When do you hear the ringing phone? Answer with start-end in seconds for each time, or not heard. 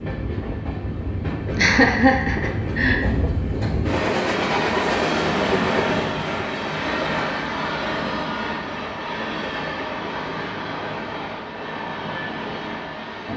not heard.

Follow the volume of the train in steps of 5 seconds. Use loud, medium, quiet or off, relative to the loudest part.
loud, loud, medium.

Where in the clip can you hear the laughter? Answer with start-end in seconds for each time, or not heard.
1.6-3.0.